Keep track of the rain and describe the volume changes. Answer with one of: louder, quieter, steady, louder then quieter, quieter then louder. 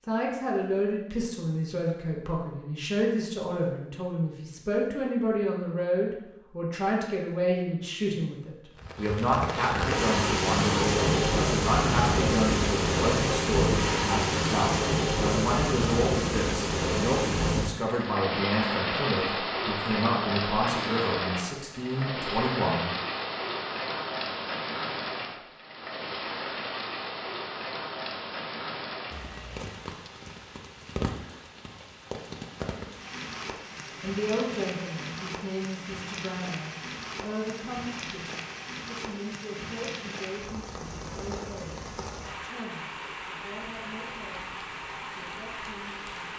quieter.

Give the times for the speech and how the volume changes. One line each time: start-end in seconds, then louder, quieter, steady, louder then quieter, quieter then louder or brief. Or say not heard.
0.1-22.9 steady
34.0-46.3 quieter.